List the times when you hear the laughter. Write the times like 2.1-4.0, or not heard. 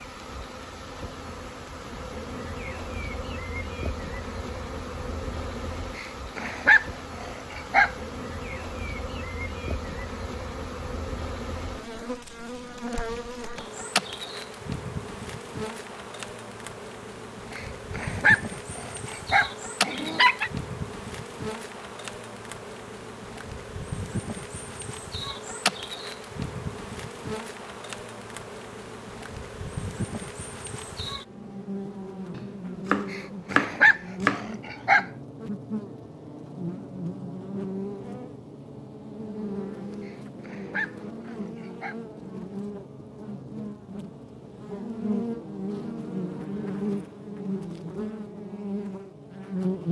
not heard.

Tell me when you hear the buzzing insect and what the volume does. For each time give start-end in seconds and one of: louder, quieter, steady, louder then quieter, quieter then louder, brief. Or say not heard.
0.0-49.8 steady.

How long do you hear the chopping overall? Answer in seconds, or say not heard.
2 s.